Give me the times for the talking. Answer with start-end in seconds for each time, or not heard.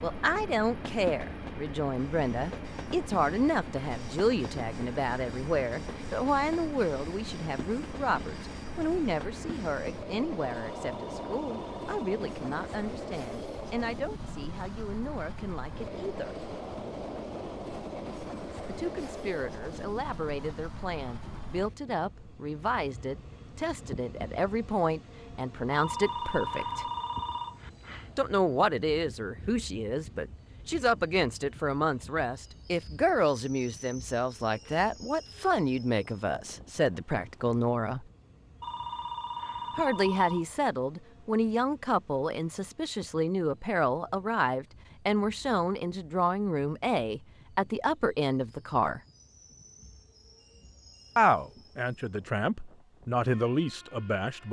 0.0-16.4, 18.6-26.9, 28.1-38.0, 39.8-49.0, 51.1-54.4.